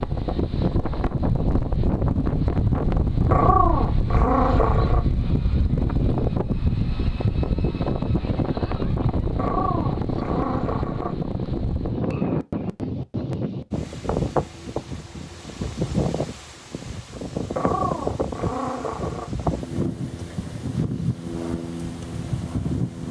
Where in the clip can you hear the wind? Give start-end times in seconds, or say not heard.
0.0-23.0.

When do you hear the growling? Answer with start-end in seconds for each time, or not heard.
3.3-5.0, 9.3-11.4, 17.6-19.3.